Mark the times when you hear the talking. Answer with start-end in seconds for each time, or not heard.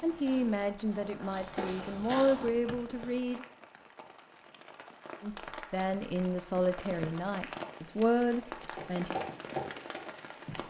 0.0-3.5, 5.2-9.2.